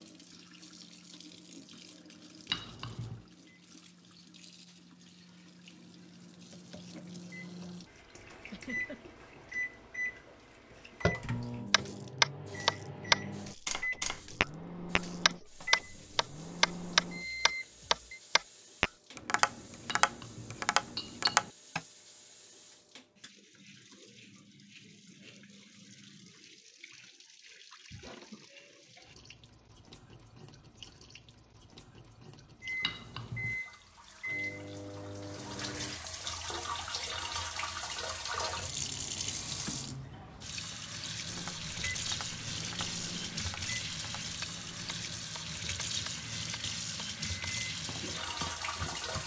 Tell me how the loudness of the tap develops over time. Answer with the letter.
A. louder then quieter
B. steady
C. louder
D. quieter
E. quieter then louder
C.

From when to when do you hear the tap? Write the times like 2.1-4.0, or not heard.
0.0-49.2.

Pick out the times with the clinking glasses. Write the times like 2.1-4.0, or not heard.
2.5-3.2, 19.9-21.4, 32.8-33.6.